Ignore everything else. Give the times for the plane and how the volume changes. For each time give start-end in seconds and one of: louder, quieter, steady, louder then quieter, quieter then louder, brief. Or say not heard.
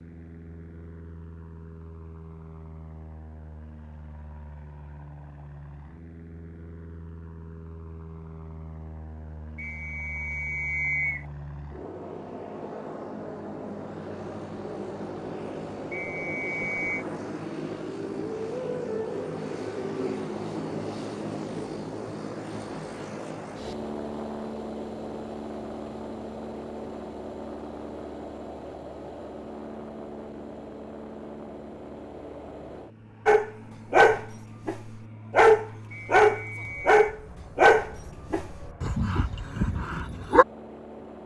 0.0-41.2 louder then quieter.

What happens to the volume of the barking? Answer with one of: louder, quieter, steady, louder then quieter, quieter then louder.
quieter.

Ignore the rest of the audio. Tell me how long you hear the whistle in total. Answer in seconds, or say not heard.
4 s.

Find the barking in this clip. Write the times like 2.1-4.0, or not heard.
33.2-40.5.